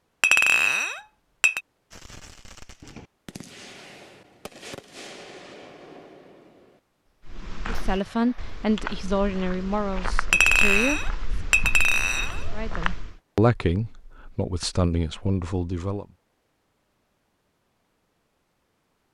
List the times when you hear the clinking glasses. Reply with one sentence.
The clinking glasses can be heard from 0.2 to 1.6 s and from 10.3 to 12.4 s.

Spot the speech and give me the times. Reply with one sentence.
The speech can be heard from 7.7 to 11.0 s and from 12.5 to 16.1 s.